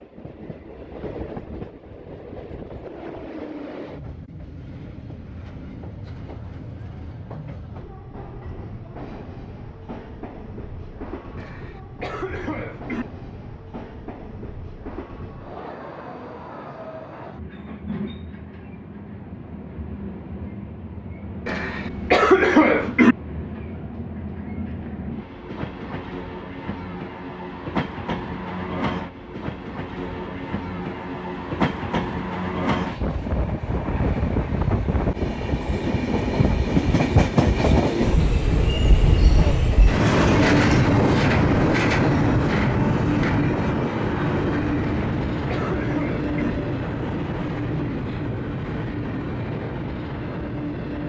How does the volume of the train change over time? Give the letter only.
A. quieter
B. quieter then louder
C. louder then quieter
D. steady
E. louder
E.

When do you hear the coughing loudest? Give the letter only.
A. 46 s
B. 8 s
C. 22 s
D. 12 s
C.